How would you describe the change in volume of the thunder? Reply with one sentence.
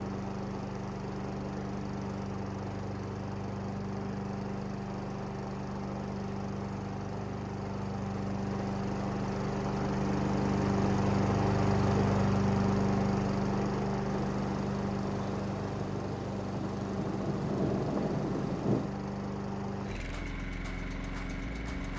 The volume of the thunder goes up.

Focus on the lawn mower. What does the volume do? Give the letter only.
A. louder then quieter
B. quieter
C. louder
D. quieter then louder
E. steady
A.